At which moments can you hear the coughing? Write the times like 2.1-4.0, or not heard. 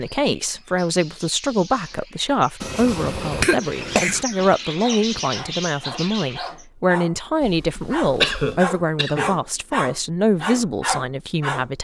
2.6-4.2, 8.2-9.3.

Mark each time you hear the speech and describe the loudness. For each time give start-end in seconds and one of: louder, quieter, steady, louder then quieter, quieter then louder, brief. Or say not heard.
0.0-11.7 steady.